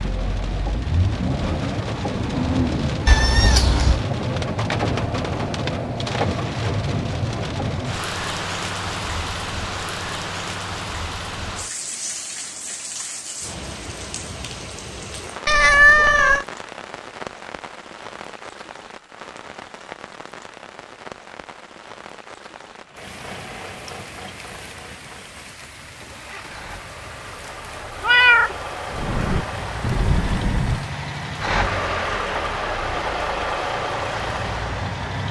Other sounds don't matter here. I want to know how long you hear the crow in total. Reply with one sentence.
You can hear the crow for 2 seconds altogether.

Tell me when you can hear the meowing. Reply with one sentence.
You can hear the meowing from 3.0 to 4.0 s, from 15.4 to 16.4 s and from 28.0 to 28.6 s.